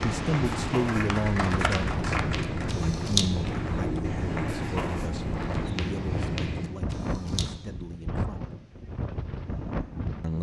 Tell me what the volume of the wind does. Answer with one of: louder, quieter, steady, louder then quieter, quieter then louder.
steady.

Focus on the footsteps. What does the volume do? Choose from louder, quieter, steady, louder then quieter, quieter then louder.
steady.